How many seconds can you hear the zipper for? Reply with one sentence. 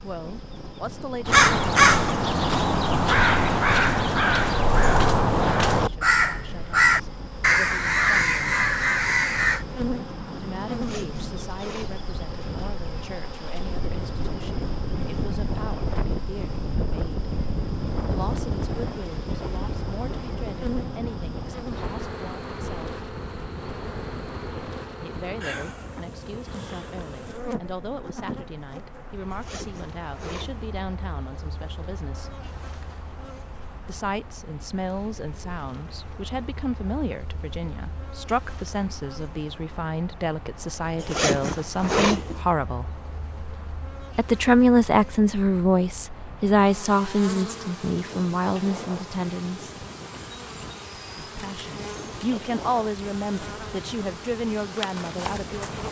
The zipper can be heard for 4 seconds in total.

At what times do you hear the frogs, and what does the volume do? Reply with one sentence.
You can't hear the frogs here.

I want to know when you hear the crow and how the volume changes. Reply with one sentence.
You can hear the crow from 1.2 to 9.7 s, at a steady volume.